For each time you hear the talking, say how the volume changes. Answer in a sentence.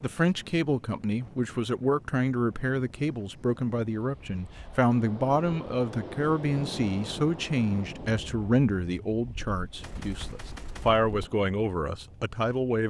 The talking can be heard from 0.0 to 12.8 s, at a steady volume.